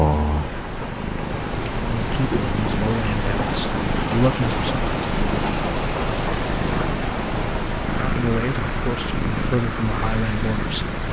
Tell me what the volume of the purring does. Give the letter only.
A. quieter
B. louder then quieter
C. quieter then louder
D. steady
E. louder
D.